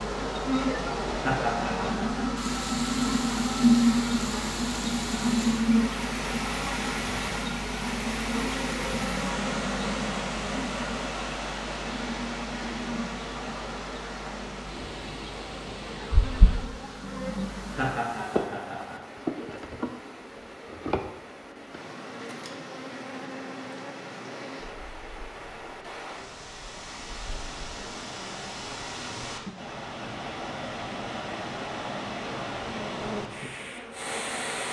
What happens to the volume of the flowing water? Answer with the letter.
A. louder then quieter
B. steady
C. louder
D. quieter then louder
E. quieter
D.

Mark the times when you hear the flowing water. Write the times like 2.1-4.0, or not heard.
0.0-34.6.